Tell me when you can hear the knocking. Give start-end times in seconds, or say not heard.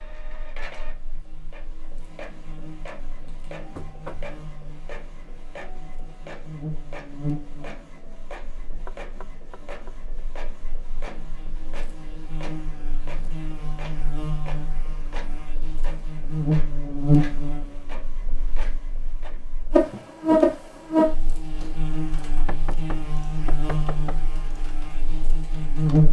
3.8-4.3, 8.8-10.1, 22.4-24.2.